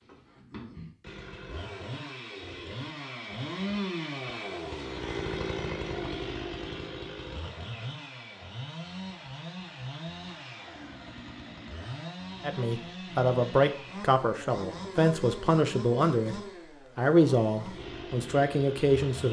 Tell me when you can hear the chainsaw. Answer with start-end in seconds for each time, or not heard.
0.0-19.2.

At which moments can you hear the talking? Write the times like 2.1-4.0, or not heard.
12.4-19.2.